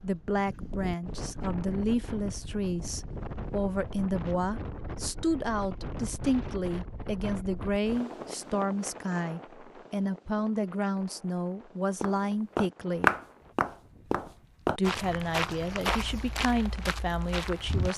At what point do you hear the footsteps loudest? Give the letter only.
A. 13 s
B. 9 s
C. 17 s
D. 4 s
A.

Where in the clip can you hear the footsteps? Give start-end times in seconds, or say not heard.
12.0-17.9.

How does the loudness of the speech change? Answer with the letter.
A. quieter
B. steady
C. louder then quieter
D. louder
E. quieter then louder
B.